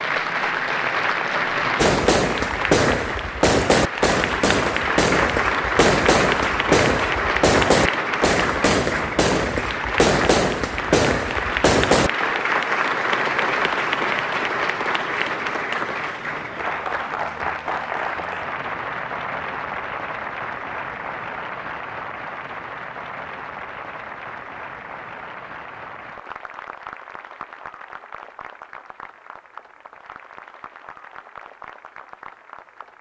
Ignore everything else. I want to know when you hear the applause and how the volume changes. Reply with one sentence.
The applause can be heard from 0.0 to 32.9 s, getting quieter.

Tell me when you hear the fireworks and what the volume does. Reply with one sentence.
You can hear the fireworks from 1.8 to 12.1 s, at a steady volume.